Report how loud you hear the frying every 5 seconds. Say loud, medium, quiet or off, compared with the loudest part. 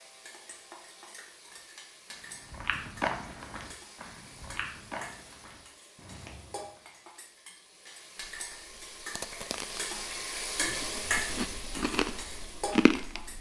quiet, medium, loud.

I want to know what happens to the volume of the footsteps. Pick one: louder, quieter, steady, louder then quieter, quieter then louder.
quieter.